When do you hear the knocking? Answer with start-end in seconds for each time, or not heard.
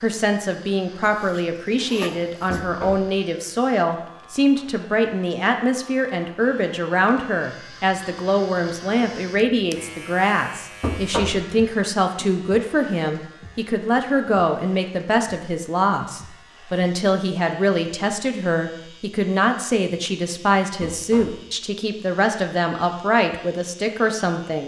2.5-3.0, 10.8-11.4, 20.8-21.4.